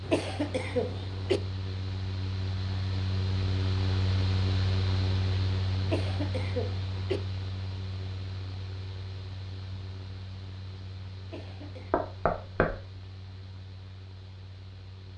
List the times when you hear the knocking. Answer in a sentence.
The knocking can be heard from 11.9 to 12.8 s.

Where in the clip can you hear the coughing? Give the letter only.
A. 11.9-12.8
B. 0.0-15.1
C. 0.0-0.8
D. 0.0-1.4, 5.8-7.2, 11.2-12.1
D.